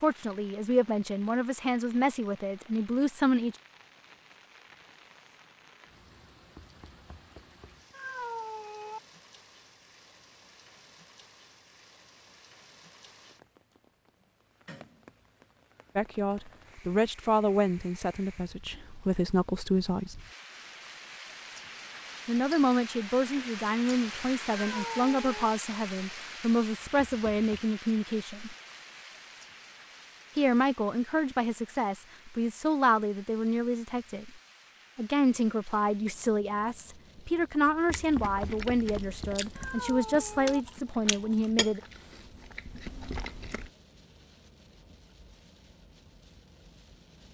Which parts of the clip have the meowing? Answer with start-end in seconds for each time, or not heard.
7.9-9.0, 24.6-25.3, 39.5-40.6.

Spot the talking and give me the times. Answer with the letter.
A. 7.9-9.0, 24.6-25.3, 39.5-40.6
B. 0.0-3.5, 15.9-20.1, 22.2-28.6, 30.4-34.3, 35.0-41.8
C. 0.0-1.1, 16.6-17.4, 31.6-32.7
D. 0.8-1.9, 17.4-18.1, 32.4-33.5
B.